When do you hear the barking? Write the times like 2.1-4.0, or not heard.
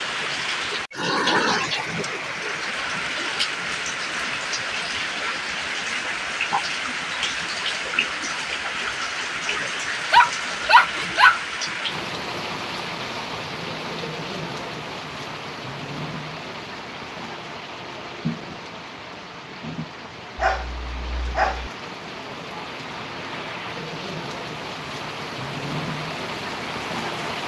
10.1-11.4, 20.4-21.7.